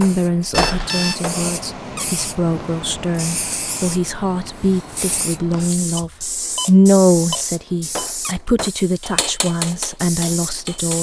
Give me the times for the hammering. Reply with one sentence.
You can hear the hammering from 0.0 to 1.4 s and from 8.0 to 10.9 s.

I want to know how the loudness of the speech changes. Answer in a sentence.
The loudness of the speech goes up, then down.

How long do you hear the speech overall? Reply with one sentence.
You can hear the speech for 11 seconds altogether.